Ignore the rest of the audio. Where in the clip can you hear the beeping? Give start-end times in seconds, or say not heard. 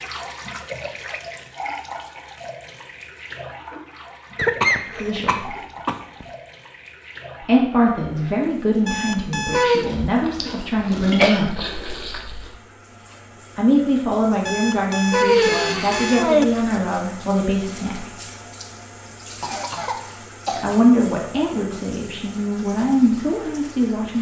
8.8-9.8, 14.4-16.4.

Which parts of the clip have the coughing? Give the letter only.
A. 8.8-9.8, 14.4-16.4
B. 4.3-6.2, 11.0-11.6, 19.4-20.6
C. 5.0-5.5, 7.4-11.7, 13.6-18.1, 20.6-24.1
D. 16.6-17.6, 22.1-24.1
B.